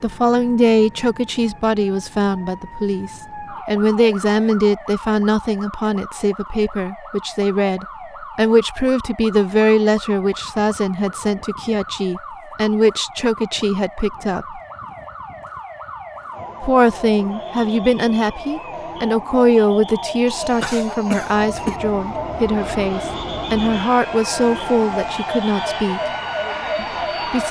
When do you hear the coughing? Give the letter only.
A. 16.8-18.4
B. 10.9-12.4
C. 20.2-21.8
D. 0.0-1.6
C.